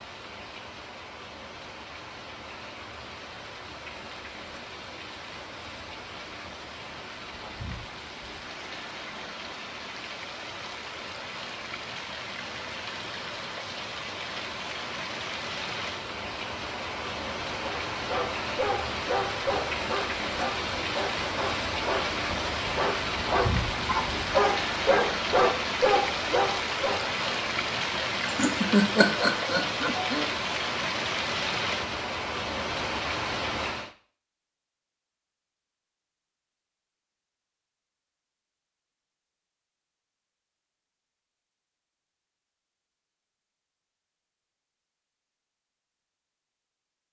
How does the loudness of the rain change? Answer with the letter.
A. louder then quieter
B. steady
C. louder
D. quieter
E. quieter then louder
C.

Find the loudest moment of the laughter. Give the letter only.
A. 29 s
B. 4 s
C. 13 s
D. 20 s
A.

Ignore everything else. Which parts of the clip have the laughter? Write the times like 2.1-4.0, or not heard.
27.9-30.3.